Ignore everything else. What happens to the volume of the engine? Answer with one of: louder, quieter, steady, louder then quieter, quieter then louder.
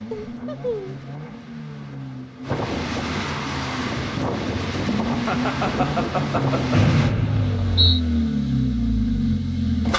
louder.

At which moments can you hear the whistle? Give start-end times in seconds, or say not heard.
6.7-8.0.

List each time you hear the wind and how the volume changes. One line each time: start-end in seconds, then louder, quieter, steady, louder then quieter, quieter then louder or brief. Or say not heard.
0.0-7.2 louder.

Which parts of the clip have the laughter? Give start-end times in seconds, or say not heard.
0.1-1.1, 5.2-6.8.